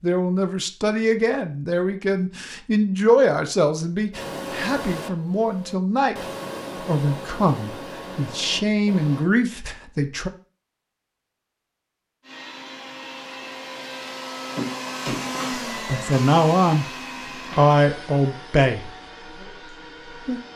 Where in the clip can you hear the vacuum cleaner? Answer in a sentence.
You can hear the vacuum cleaner from 4.1 to 9.3 s and from 12.2 to 20.5 s.